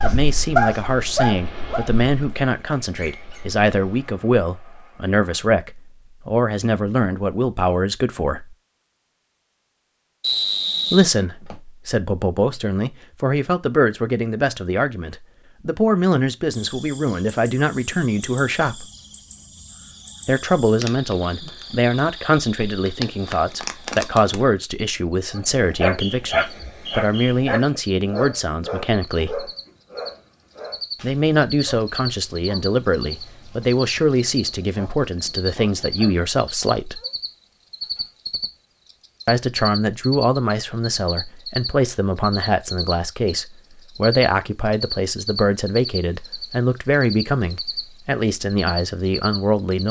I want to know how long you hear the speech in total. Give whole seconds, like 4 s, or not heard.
42 s.